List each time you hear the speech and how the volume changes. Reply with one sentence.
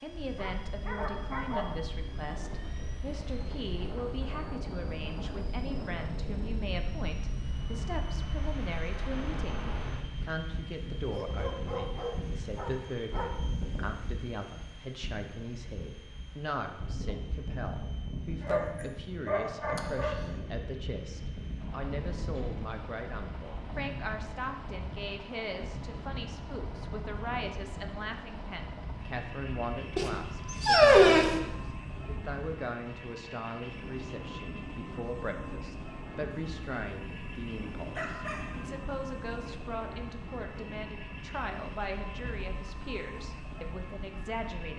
You can hear the speech from 0.0 to 44.7 s, at a steady volume.